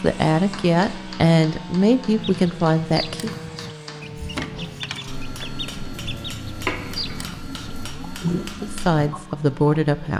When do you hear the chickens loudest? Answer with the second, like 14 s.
8 s.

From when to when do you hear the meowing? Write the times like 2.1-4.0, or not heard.
6.7-7.3.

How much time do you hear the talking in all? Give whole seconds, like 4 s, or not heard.
5 s.